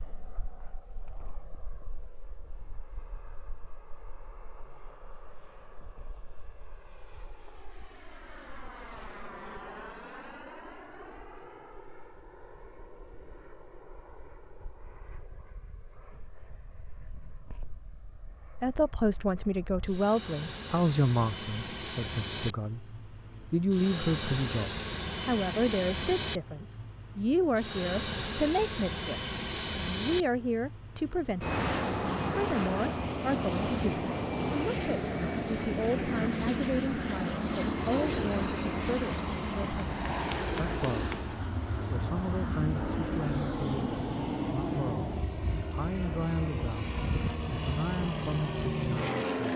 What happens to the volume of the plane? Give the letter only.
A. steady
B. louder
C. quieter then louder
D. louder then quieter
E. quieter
B.